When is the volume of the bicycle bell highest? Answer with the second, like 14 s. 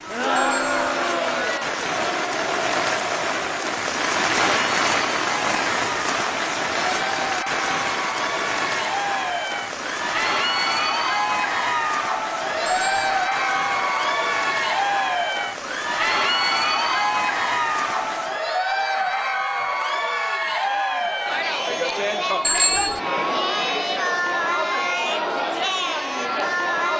23 s.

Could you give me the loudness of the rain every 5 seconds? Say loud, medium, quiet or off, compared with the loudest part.
loud, loud, medium, medium, off, off.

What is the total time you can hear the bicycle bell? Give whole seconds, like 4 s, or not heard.
2 s.